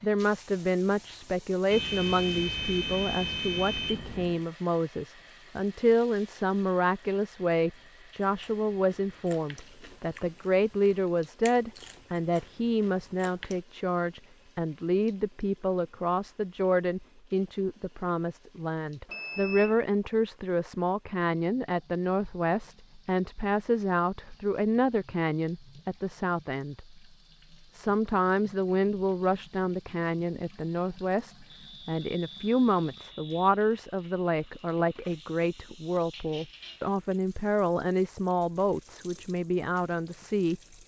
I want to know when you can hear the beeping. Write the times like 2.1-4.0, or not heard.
1.7-4.4, 19.1-19.9, 31.5-33.5.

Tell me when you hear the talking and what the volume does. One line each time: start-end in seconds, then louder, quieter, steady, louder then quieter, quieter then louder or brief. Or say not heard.
0.0-27.0 steady
27.7-40.6 steady.